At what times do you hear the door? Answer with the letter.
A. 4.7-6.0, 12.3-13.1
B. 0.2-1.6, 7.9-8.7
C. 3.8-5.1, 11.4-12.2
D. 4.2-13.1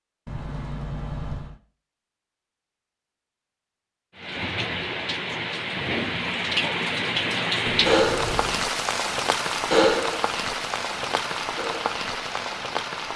B.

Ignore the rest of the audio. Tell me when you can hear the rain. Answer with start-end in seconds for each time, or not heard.
4.2-13.1.